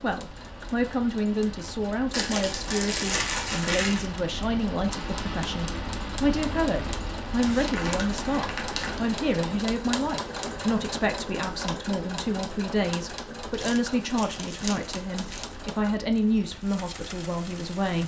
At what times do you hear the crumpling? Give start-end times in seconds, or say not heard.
2.1-4.1, 7.4-9.0, 13.5-15.4.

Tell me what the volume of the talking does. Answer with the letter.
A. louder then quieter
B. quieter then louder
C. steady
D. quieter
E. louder
C.